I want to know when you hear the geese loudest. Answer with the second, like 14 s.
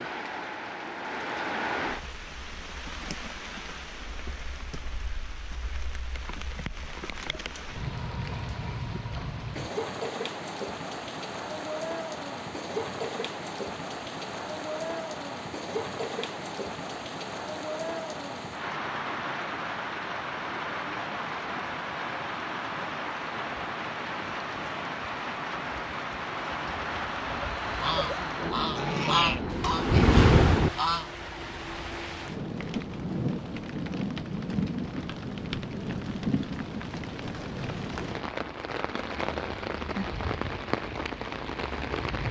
29 s.